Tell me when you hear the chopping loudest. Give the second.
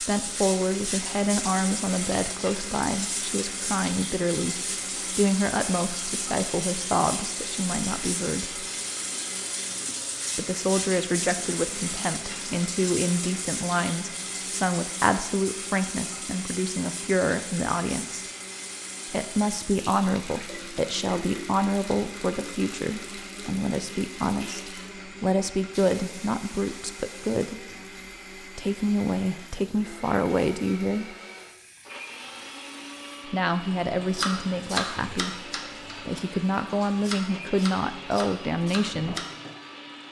35 s.